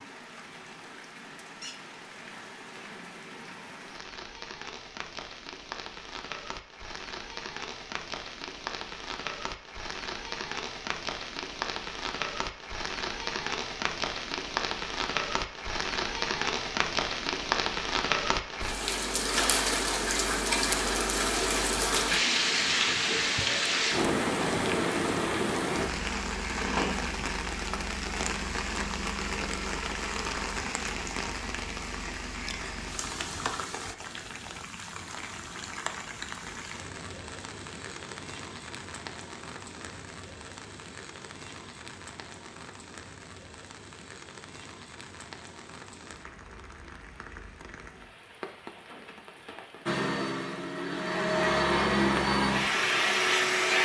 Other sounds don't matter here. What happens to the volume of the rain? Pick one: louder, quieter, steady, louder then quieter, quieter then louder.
louder then quieter.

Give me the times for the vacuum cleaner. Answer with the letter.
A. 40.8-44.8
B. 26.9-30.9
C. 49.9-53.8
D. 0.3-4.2
C.